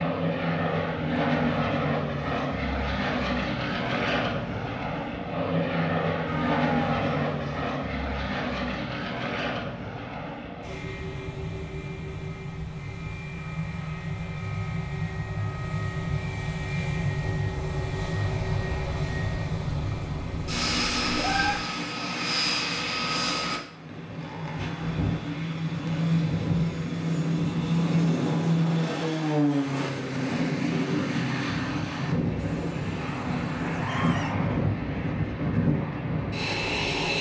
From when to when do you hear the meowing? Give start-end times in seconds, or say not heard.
6.2-7.7, 19.6-21.6, 32.4-34.4.